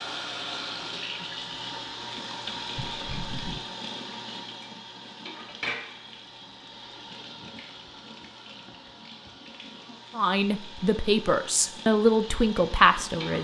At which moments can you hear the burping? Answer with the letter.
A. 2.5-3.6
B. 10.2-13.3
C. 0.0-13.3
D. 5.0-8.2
A.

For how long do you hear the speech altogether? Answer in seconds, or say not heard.
3 s.